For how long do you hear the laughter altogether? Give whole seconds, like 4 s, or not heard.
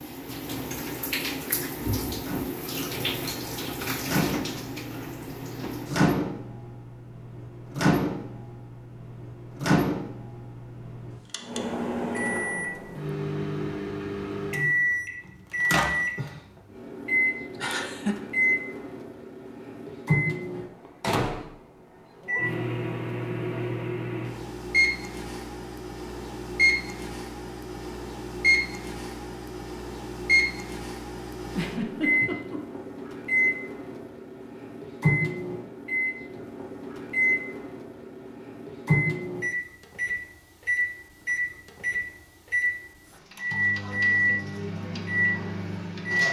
2 s.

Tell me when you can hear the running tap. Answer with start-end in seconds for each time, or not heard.
0.0-6.2.